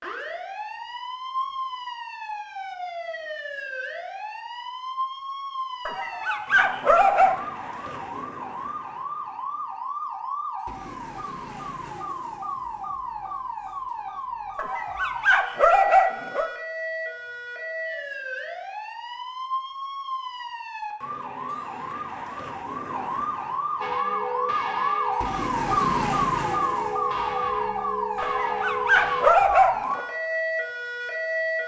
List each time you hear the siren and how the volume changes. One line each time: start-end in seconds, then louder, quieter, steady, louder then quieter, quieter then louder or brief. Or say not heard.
0.0-31.6 louder.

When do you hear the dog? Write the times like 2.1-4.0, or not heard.
5.8-7.3, 14.6-16.5, 28.2-30.1.